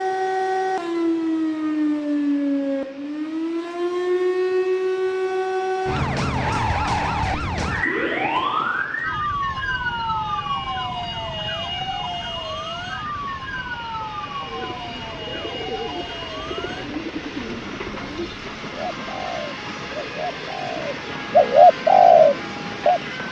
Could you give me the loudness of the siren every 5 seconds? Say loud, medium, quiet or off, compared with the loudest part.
loud, loud, medium, quiet, quiet.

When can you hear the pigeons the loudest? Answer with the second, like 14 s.
22 s.